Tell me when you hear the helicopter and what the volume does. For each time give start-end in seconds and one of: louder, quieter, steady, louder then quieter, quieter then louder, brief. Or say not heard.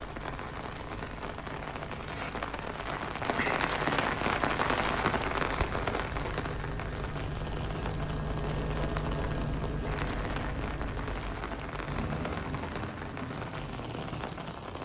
0.0-14.7 louder.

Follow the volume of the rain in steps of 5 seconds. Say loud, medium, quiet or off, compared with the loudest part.
loud, loud, medium.